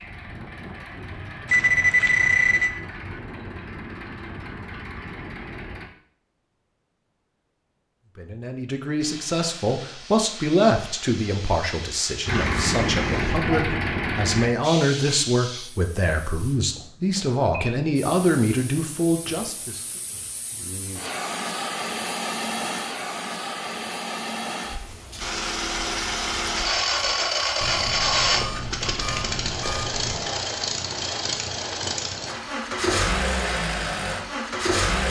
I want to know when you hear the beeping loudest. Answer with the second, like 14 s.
2 s.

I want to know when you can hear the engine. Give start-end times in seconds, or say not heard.
0.0-5.9, 12.2-14.5, 25.2-35.0.